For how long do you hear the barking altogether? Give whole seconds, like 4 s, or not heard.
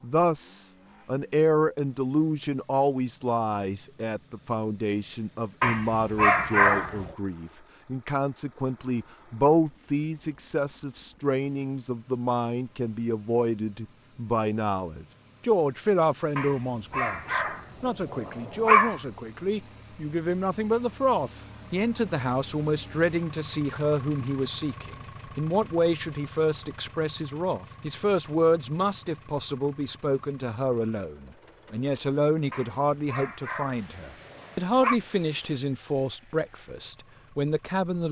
7 s.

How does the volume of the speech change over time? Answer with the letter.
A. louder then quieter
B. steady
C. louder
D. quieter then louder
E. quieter
B.